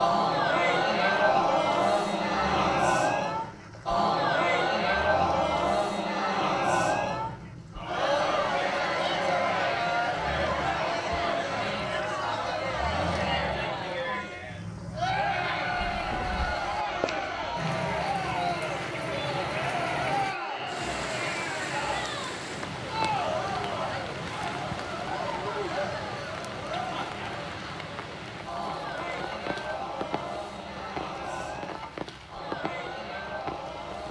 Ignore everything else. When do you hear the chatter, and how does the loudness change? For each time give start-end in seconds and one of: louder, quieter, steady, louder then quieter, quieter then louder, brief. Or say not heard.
0.0-34.0 quieter.